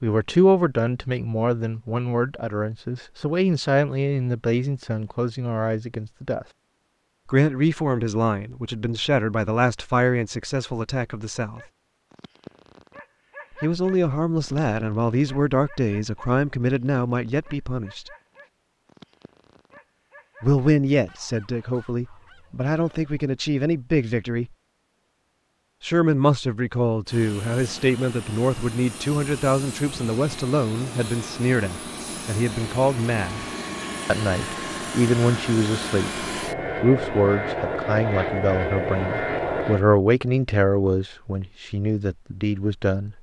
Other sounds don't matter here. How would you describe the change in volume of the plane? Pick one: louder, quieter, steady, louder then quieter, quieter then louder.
louder.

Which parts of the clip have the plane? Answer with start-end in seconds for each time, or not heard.
27.1-39.8.